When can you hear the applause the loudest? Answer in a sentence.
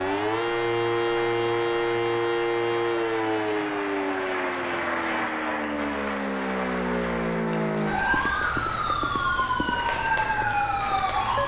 The volume of the applause peaks at 5 seconds.